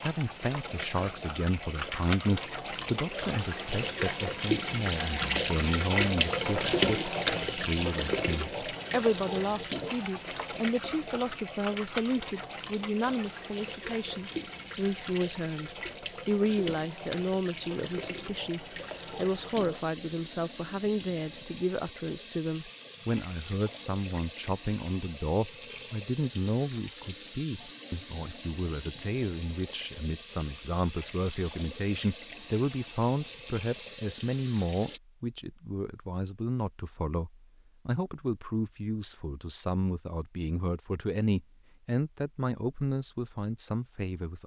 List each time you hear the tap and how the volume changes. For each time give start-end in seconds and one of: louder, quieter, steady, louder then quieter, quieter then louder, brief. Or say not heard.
0.0-35.0 quieter.